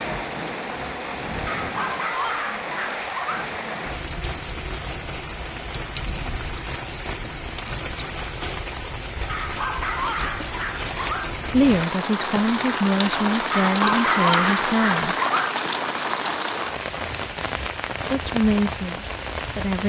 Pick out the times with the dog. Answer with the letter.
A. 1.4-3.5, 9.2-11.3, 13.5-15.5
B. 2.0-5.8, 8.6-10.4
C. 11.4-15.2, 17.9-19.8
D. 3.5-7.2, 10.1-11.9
A.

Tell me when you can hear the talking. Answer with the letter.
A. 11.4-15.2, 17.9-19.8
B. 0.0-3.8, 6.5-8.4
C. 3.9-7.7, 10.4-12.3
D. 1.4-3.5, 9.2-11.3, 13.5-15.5
A.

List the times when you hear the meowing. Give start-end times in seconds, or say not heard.
not heard.